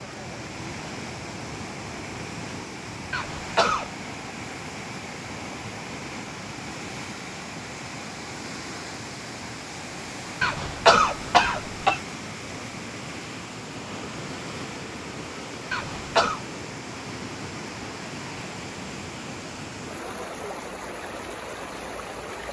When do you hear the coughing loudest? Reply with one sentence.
The loudest moment of the coughing is at 11 seconds.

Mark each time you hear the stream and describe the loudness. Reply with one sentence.
The stream can be heard from 0.0 to 22.4 s, at a steady volume.